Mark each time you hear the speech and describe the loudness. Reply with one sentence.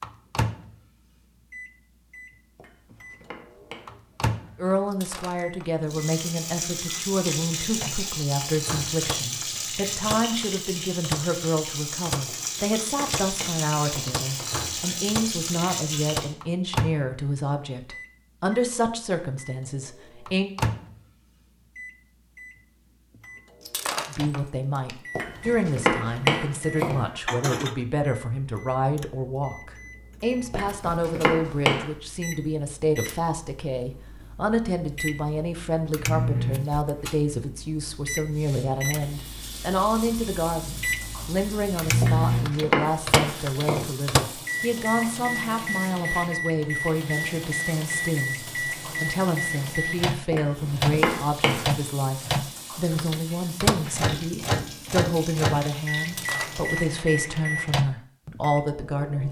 You can hear the speech from 4.5 to 20.5 s, at a steady volume; and from 24.1 to 59.2 s, at a steady volume.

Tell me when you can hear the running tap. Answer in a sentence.
The running tap can be heard from 5.8 to 16.4 s and from 38.3 to 57.0 s.